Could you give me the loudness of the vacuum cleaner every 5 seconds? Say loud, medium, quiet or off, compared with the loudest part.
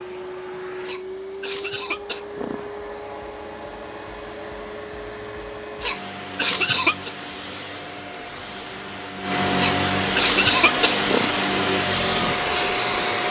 quiet, medium, loud.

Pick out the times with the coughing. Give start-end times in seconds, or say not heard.
0.8-2.7, 5.8-7.1, 9.6-11.3.